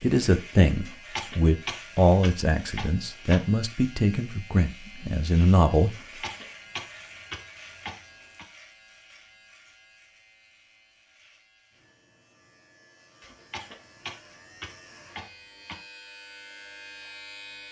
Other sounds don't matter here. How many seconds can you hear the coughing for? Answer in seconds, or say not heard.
8 s.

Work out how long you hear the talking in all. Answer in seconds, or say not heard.
6 s.